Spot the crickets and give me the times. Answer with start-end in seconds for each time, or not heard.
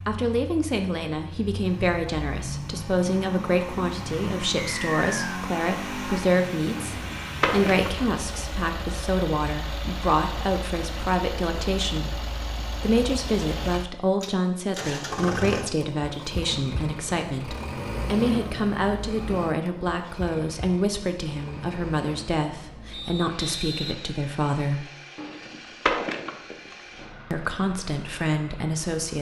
not heard.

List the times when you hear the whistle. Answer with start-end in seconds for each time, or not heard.
4.8-5.4, 22.9-24.1.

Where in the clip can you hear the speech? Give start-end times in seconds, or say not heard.
0.1-24.9, 27.3-29.1.